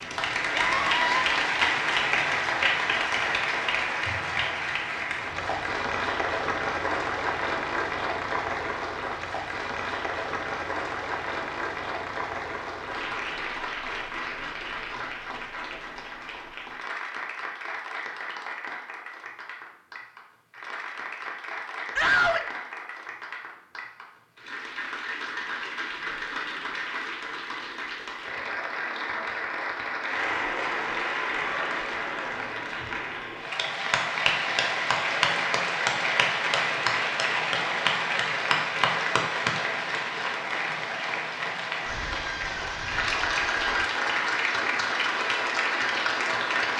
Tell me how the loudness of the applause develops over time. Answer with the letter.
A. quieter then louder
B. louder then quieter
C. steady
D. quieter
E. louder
A.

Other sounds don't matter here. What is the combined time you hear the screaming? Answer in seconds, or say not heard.
3 s.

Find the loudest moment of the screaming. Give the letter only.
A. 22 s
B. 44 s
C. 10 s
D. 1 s
A.